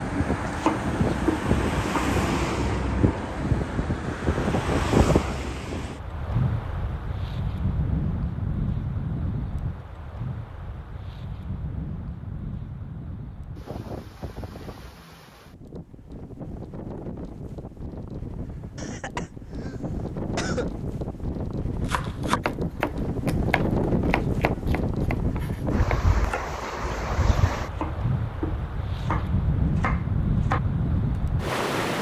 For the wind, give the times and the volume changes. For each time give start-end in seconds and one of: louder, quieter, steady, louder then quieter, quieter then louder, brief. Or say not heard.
0.0-31.9 quieter then louder.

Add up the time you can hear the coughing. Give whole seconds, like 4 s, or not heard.
2 s.